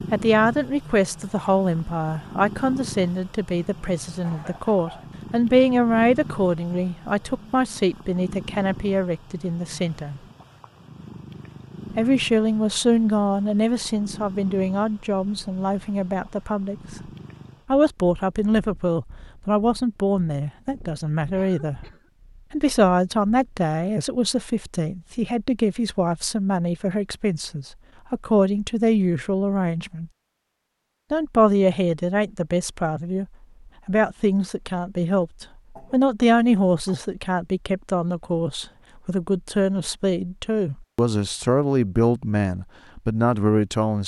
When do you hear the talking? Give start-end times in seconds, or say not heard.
0.1-10.2, 11.9-17.1, 17.7-21.8, 22.5-30.1, 31.1-33.2, 33.9-44.0.